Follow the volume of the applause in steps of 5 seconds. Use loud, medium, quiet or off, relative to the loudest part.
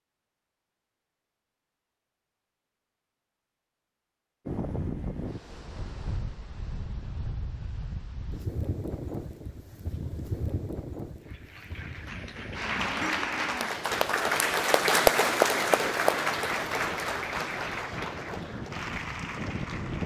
off, off, loud, loud.